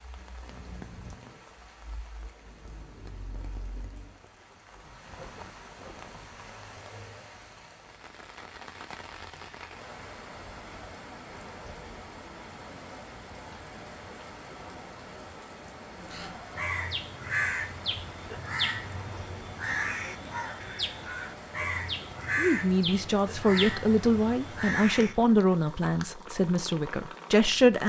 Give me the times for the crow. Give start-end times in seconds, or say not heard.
16.0-25.4.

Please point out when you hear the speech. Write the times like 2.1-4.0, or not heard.
22.4-27.8.